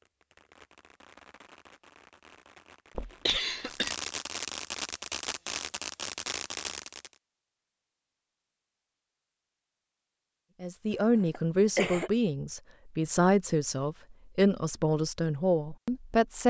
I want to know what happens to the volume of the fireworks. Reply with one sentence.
The volume of the fireworks goes up.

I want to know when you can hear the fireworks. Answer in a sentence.
The fireworks can be heard from 0.0 to 7.2 s.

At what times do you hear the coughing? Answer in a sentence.
The coughing can be heard from 3.0 to 4.0 s and from 10.9 to 12.1 s.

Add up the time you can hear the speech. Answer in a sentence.
You can hear the speech for 6 seconds altogether.